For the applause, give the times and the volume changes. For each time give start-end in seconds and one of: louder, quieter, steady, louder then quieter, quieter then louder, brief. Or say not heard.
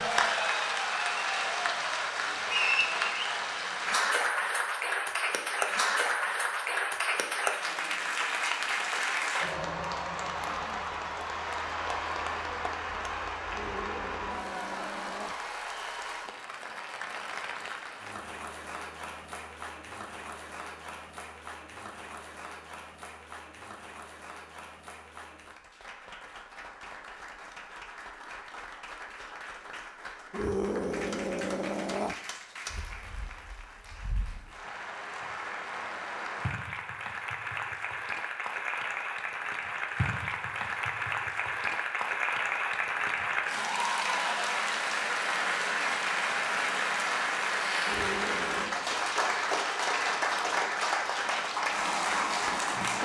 0.0-53.0 quieter then louder.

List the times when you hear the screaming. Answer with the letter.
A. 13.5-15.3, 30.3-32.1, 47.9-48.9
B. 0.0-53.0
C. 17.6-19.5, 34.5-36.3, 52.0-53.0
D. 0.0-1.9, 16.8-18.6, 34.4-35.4
A.